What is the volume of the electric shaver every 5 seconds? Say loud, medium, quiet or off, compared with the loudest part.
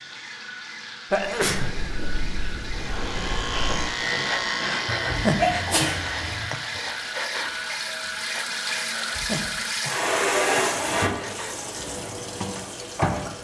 loud, medium, off.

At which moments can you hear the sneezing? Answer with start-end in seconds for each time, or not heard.
1.1-1.7, 4.8-6.5, 10.7-11.2.